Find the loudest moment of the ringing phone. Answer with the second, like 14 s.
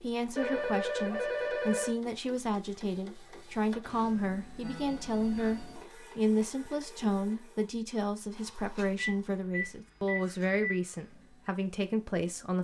1 s.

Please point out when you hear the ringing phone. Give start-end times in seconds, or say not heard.
0.3-1.9, 4.6-5.8, 8.9-10.8.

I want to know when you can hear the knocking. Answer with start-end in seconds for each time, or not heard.
not heard.